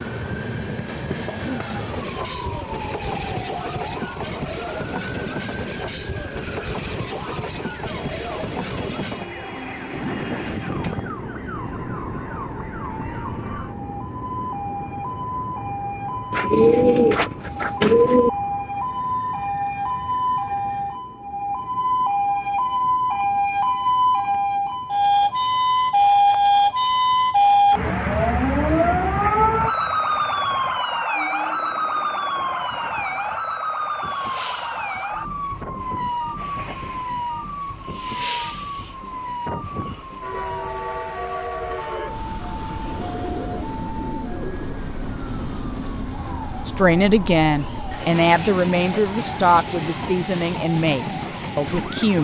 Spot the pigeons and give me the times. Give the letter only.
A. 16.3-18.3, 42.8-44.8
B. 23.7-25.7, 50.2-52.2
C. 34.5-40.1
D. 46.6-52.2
A.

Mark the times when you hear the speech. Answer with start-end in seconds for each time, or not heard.
46.6-52.2.